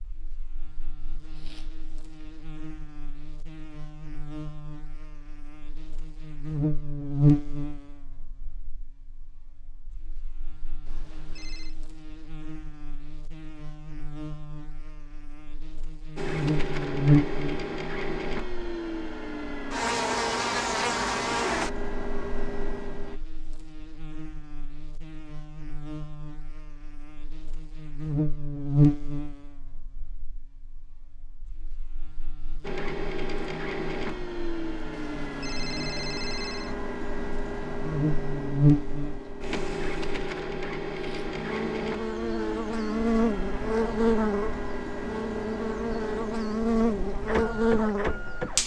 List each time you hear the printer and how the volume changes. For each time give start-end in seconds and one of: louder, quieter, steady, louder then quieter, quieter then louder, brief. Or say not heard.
16.1-23.2 steady
32.6-48.6 steady.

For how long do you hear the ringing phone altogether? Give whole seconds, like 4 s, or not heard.
3 s.